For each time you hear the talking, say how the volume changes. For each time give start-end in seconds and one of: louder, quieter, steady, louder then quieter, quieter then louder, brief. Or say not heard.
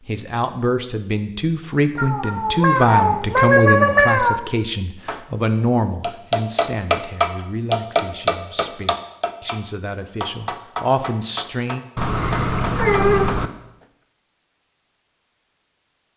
0.0-11.8 quieter then louder.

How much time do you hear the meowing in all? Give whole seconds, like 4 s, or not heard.
4 s.